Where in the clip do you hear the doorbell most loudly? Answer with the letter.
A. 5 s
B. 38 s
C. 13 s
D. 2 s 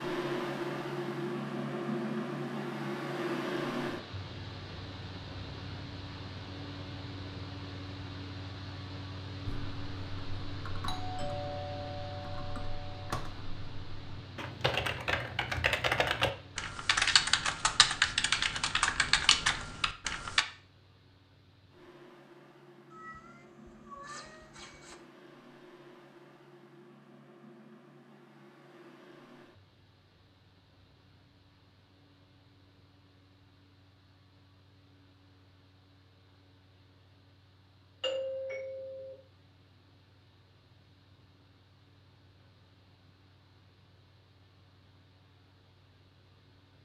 B.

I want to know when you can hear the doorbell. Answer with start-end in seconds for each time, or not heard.
10.8-13.2, 38.0-39.1.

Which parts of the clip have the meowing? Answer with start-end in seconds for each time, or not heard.
22.9-24.9.